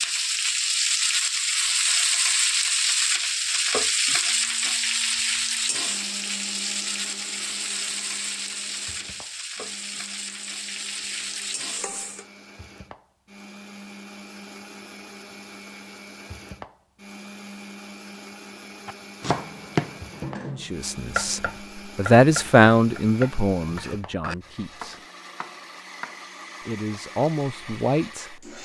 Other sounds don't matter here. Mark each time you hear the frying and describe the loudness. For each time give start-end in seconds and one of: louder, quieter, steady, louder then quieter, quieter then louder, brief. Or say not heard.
0.0-12.2 quieter.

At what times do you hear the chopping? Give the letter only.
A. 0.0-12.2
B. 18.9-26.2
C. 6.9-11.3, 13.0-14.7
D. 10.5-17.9
B.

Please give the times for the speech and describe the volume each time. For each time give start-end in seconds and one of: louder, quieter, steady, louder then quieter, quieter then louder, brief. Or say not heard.
20.6-25.0 louder then quieter
26.6-28.4 brief.